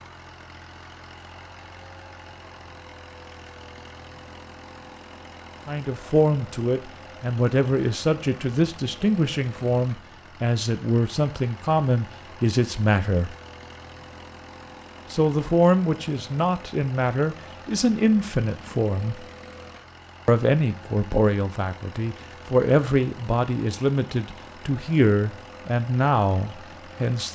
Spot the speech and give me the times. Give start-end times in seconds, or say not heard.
5.7-13.3, 15.1-19.2, 20.2-27.3.